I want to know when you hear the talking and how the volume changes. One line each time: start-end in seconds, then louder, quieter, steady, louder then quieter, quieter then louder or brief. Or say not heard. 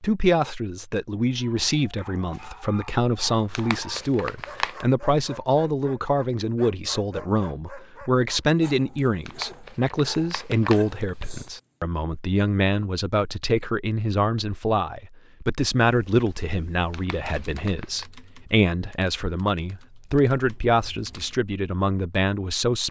0.0-22.8 steady.